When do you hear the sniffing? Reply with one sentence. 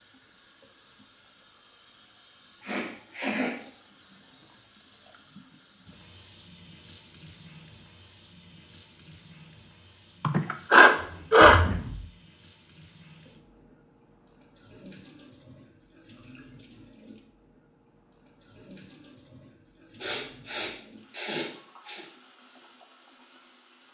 The sniffing can be heard from 2.6 to 3.5 s, from 10.2 to 11.6 s and from 20.0 to 22.1 s.